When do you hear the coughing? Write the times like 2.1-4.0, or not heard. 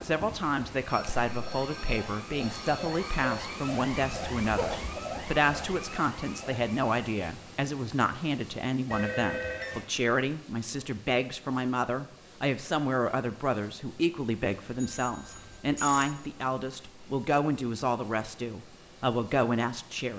4.5-5.2.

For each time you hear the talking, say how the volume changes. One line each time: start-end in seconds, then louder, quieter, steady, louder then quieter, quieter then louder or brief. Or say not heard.
0.0-20.1 steady.